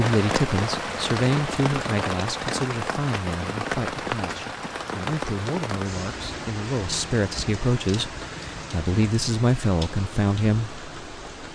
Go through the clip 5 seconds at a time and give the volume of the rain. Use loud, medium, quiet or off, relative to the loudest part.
loud, medium, medium.